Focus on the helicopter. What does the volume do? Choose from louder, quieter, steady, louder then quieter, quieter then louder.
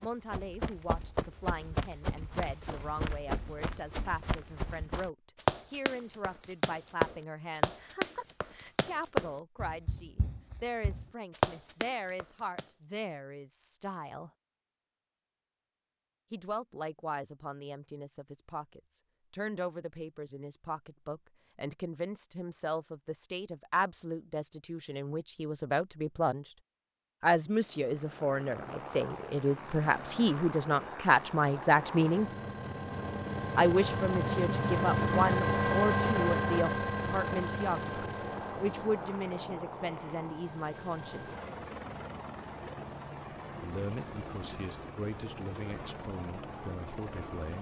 louder then quieter.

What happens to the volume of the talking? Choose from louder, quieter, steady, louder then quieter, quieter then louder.
louder then quieter.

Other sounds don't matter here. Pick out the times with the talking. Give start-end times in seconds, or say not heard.
0.0-14.3, 16.3-26.4, 27.2-32.3, 33.5-41.4, 43.5-47.5.